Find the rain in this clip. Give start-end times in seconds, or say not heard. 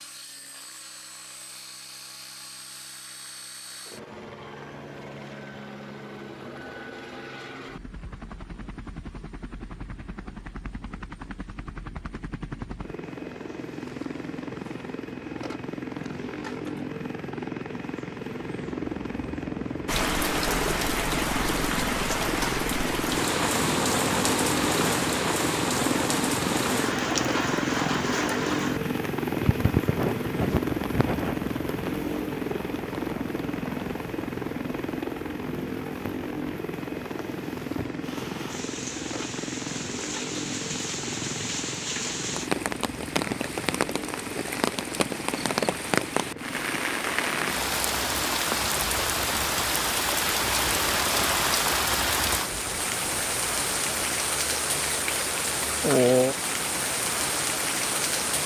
19.9-58.4.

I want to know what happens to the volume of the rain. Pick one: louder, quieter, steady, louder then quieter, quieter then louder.
quieter then louder.